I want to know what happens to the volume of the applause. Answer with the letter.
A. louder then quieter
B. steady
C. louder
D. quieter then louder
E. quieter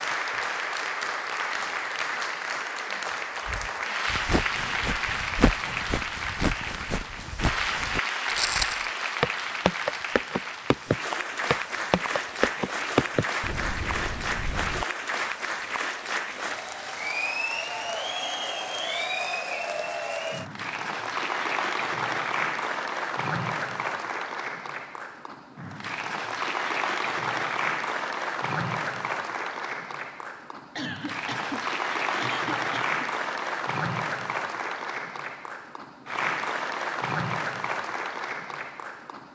B.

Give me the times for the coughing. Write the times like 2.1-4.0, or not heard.
30.8-33.0.